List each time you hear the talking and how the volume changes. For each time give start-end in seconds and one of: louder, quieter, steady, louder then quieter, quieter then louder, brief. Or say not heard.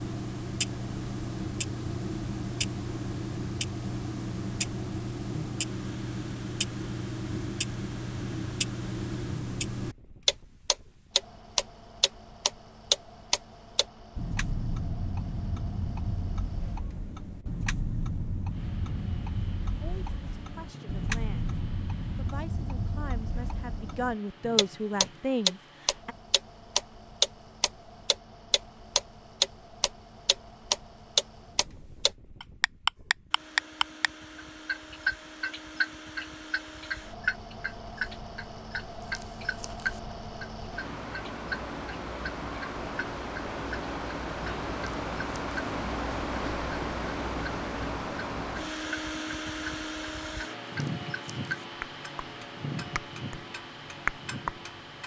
19.8-21.6 brief
22.1-26.1 louder.